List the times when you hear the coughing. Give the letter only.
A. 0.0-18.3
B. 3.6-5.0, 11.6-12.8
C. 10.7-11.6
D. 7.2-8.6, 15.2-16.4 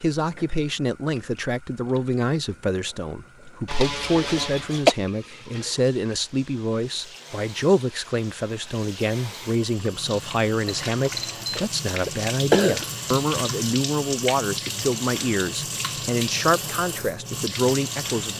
B.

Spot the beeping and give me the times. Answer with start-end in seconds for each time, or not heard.
10.7-11.6.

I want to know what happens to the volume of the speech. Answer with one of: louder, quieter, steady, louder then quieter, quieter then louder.
steady.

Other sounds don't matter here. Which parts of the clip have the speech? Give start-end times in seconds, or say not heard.
0.0-18.3.